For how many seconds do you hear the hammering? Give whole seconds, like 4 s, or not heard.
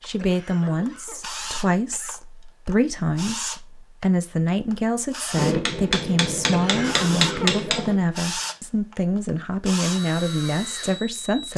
3 s.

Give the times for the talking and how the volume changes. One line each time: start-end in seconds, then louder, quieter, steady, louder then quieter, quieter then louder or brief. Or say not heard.
0.0-11.5 steady.